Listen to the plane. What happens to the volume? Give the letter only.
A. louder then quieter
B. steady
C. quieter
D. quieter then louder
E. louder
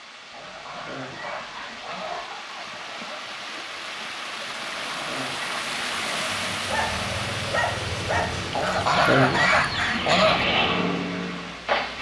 E.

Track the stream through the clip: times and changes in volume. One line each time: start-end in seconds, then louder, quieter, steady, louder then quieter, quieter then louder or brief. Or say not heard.
0.0-11.9 louder then quieter.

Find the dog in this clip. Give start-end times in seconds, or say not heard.
1.2-3.2, 6.7-8.4.